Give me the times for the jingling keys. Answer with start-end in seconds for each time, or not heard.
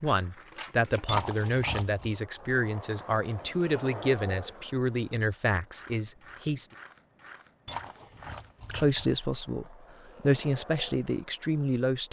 1.1-2.2, 7.7-9.2.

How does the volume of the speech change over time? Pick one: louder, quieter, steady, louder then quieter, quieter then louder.
steady.